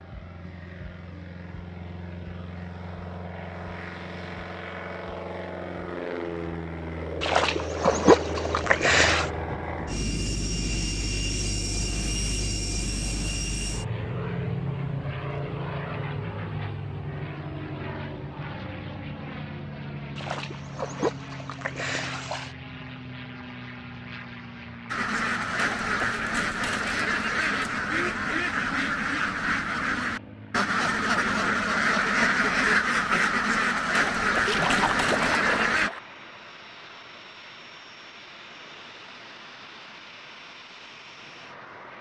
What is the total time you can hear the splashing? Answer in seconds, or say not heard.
6 s.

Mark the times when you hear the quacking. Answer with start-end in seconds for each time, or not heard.
24.9-35.9.